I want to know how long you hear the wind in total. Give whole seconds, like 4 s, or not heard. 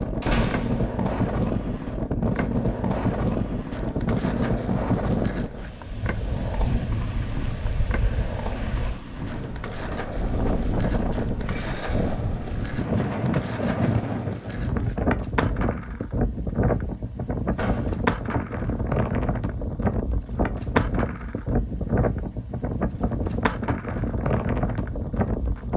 26 s.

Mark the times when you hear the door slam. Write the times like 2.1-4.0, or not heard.
0.2-1.0, 17.6-18.0.